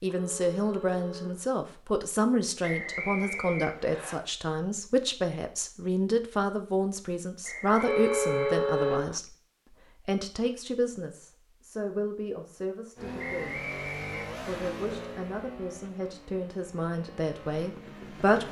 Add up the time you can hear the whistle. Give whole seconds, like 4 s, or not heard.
5 s.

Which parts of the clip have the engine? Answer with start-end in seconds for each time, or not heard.
12.9-18.4.